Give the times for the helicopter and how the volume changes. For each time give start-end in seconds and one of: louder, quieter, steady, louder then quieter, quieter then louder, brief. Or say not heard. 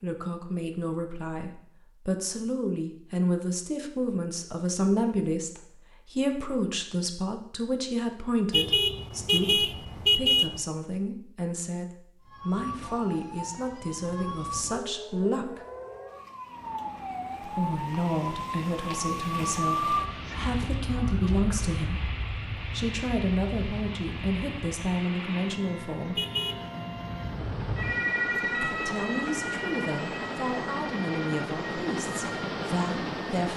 16.4-33.5 louder.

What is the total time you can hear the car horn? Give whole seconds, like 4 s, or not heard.
3 s.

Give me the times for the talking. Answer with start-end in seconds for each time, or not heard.
0.0-15.6, 17.4-22.1, 22.7-26.2, 28.6-33.5.